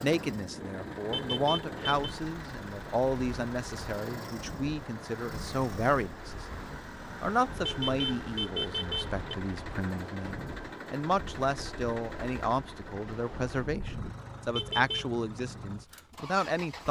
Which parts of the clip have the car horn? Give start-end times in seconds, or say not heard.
1.1-2.1, 7.6-9.2, 14.6-15.1.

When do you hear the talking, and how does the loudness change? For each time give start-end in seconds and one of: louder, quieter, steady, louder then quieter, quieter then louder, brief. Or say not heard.
0.0-16.8 steady.